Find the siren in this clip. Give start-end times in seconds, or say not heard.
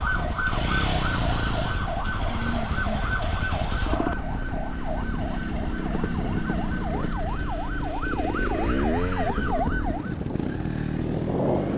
0.0-10.2.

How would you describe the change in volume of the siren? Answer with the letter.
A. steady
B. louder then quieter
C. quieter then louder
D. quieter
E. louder
C.